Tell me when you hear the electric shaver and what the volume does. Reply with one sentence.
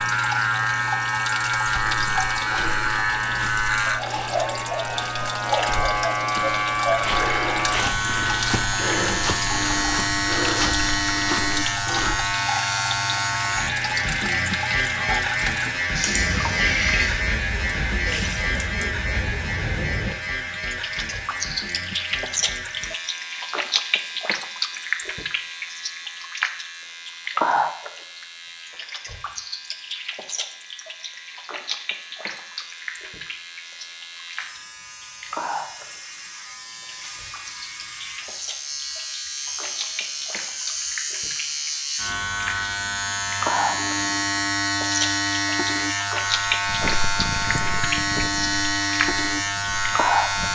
The electric shaver can be heard from 0.0 to 50.5 s, getting quieter then louder.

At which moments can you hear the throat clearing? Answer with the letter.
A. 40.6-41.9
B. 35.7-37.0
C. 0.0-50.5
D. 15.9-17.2
D.